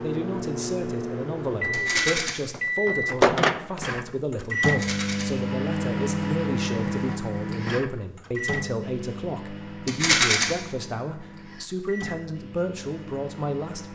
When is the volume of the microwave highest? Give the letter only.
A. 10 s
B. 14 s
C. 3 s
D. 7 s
C.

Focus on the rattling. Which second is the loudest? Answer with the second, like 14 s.
10 s.